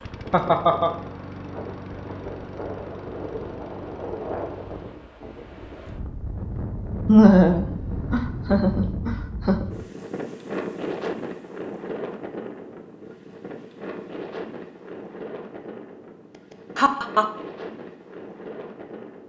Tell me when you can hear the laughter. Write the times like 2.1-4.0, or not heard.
0.3-0.9, 7.0-9.7, 16.8-17.2.